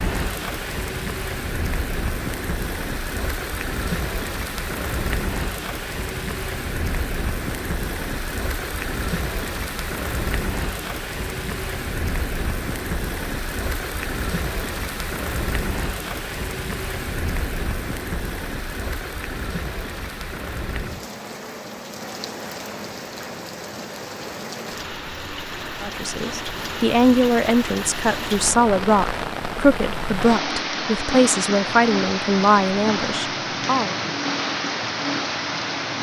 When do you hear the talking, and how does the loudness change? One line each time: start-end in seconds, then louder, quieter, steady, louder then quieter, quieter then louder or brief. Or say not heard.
25.8-34.0 steady.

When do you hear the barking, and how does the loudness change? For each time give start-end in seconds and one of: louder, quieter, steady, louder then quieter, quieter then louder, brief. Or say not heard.
not heard.